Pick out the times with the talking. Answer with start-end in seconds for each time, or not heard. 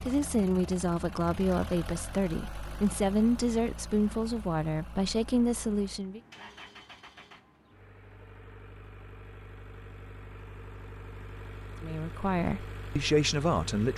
0.0-6.2, 11.8-13.9.